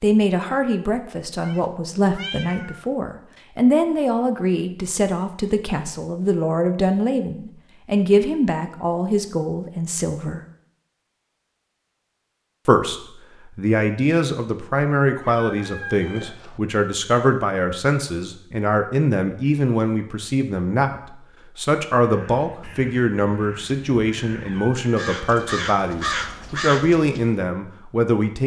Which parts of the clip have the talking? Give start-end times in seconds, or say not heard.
0.0-10.4, 12.7-28.4.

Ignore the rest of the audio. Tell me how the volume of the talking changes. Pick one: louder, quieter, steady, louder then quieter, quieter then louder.
steady.